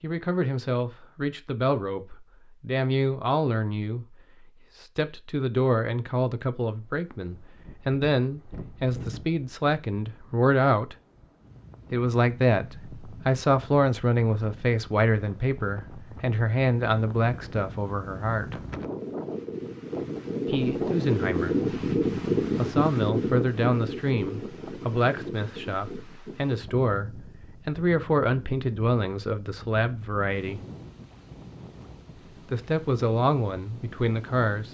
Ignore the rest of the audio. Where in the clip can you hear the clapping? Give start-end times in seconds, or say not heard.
not heard.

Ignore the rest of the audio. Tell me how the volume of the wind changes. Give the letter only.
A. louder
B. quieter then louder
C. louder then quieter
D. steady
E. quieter
C.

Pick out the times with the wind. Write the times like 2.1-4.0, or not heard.
6.8-34.7.